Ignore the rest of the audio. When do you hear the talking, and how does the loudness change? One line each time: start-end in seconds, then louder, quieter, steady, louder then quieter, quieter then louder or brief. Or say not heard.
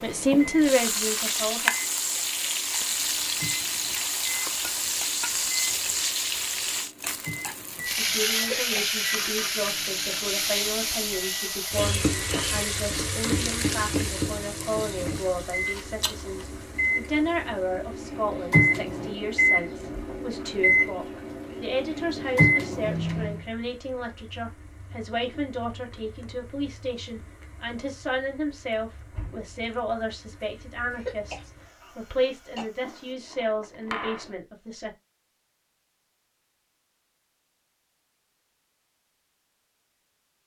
0.0-1.7 brief
7.8-34.9 steady.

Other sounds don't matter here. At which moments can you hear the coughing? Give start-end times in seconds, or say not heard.
8.3-8.9, 30.9-32.6.